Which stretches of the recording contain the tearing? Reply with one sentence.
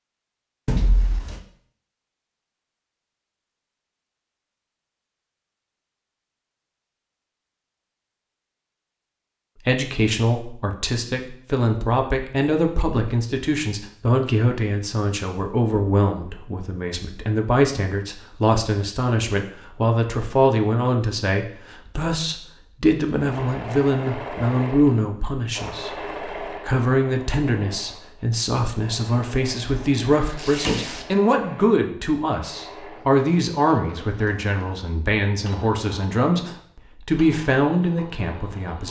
The tearing can be heard from 30.4 to 31.1 s.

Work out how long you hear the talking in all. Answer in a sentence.
The talking can be heard for 29 seconds in total.